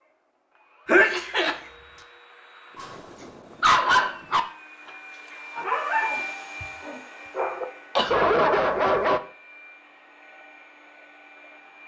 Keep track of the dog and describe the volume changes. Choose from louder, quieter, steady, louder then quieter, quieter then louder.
quieter then louder.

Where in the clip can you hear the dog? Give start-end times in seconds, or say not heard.
2.8-9.2.